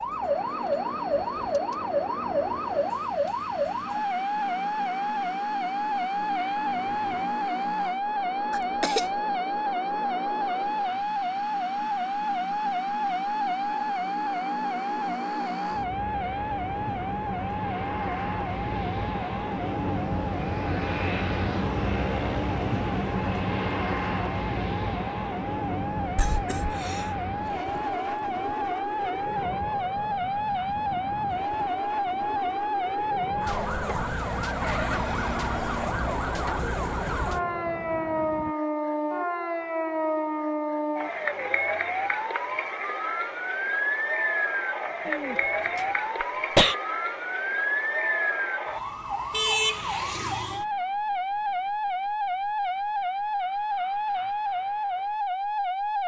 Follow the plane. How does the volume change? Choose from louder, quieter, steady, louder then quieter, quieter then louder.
louder then quieter.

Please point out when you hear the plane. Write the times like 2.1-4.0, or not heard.
0.0-38.5.